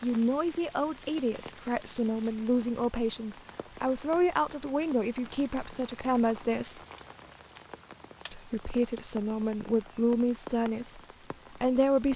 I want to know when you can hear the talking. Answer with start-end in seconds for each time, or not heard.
0.0-6.8, 8.3-12.1.